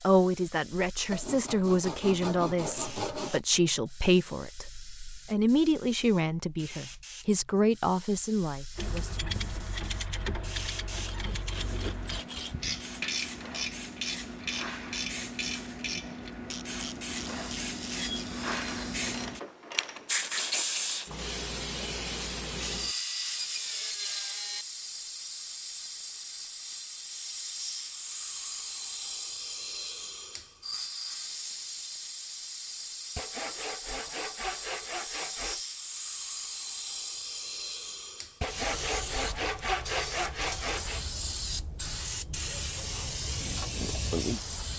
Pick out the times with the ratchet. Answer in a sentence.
You can hear the ratchet from 8.8 to 20.4 s.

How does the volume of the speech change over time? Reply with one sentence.
The volume of the speech stays about the same.